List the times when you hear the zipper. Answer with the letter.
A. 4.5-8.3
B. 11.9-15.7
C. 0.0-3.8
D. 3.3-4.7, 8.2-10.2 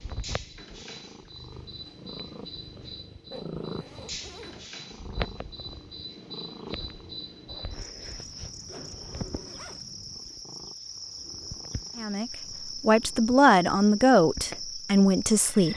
D.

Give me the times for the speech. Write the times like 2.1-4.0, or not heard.
11.9-15.7.